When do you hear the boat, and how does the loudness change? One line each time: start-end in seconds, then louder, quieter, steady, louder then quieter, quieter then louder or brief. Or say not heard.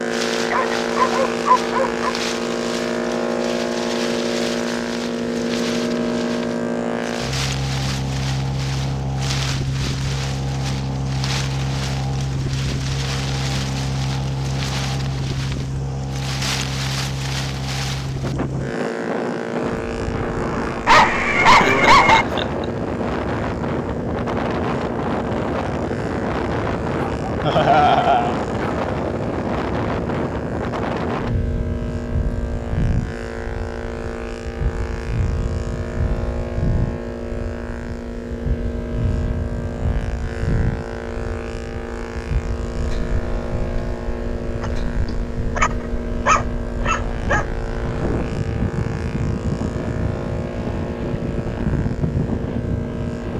0.0-53.3 quieter.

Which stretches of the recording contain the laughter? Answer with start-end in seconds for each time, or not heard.
21.6-22.6, 27.4-28.4.